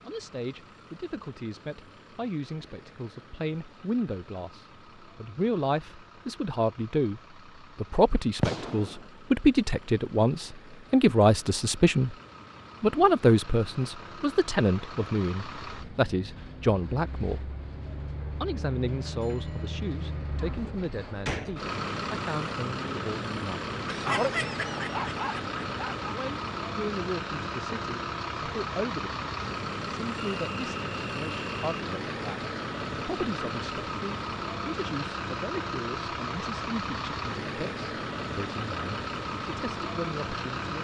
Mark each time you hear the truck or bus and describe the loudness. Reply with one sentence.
The truck or bus can be heard from 0.0 to 40.7 s, getting louder.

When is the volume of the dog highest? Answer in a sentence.
The volume of the dog peaks at 24 seconds.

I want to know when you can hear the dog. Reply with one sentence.
The dog can be heard from 23.9 to 26.1 s.